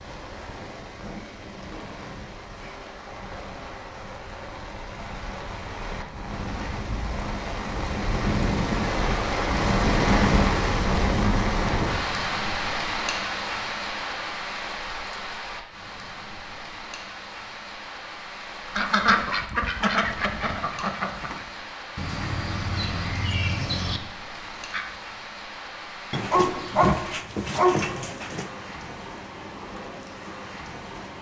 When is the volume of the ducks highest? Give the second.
19 s.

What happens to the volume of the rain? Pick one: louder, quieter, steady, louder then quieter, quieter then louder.
louder then quieter.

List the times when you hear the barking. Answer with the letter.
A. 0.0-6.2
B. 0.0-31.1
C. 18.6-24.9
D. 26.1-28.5
D.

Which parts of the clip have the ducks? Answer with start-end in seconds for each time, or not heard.
18.6-24.9.